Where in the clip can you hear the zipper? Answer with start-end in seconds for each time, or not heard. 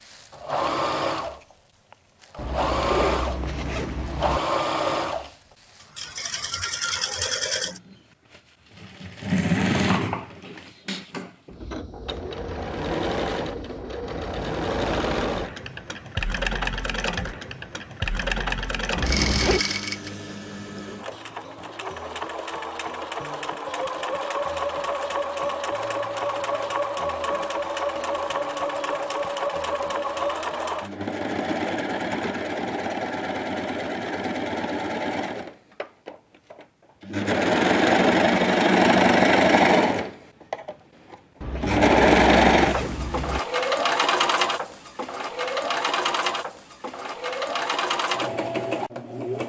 2.4-4.4, 18.9-19.6, 41.4-43.4.